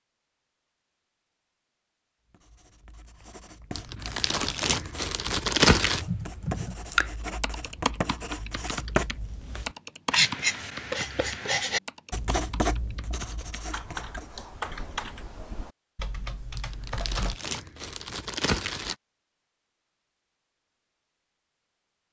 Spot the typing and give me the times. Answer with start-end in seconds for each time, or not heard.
6.0-17.4.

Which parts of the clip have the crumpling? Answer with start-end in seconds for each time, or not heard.
3.8-6.0, 16.6-18.9.